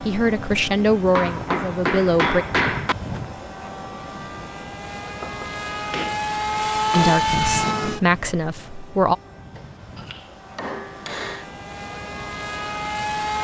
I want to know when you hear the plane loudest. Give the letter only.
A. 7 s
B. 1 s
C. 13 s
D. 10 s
A.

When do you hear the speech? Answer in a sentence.
You can hear the speech from 0.0 to 2.5 s and from 6.9 to 9.2 s.